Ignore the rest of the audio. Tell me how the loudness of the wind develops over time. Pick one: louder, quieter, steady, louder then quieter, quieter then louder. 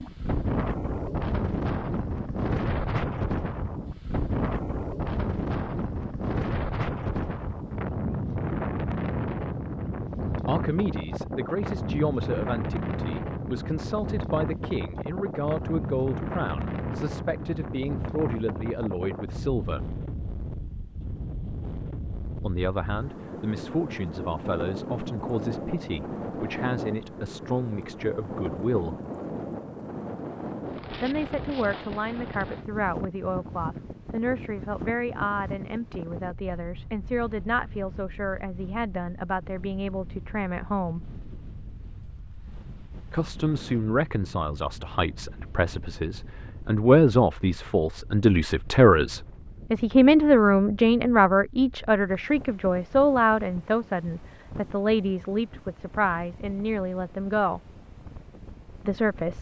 quieter.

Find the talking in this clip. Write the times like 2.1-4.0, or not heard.
10.4-19.9, 22.4-28.9, 31.0-41.0, 43.1-57.6, 58.9-59.3.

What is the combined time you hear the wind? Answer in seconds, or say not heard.
59 s.